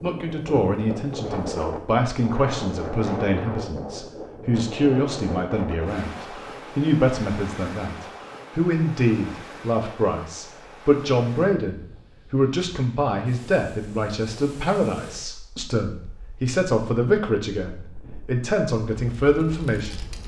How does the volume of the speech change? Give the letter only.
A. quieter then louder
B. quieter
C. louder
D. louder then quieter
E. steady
E.